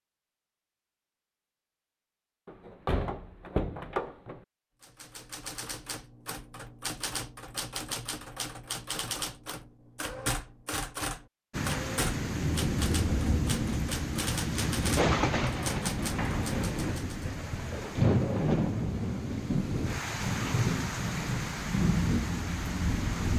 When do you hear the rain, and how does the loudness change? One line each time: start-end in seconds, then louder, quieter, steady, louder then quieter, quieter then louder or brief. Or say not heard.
11.5-23.3 steady.